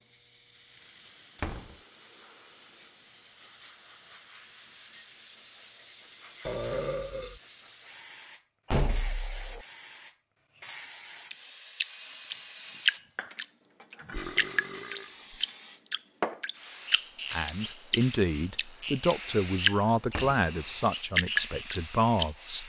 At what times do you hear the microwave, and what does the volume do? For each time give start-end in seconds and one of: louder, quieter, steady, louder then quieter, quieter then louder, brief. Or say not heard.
not heard.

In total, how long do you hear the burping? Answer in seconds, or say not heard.
2 s.